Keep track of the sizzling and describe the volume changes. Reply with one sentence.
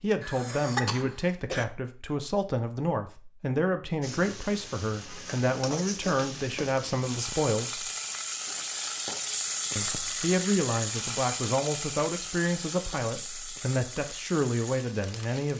The volume of the sizzling goes up, then down.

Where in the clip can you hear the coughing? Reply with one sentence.
The coughing can be heard from 0.2 to 1.6 s.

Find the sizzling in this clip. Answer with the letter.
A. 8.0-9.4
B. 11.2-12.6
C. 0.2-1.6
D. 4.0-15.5
D.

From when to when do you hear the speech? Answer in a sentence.
The speech can be heard from 0.0 to 7.9 s and from 9.8 to 15.5 s.